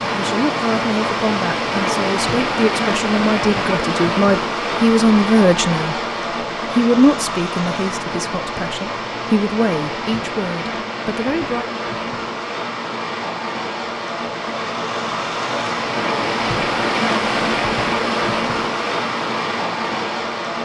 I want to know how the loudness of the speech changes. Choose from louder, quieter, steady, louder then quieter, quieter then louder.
louder then quieter.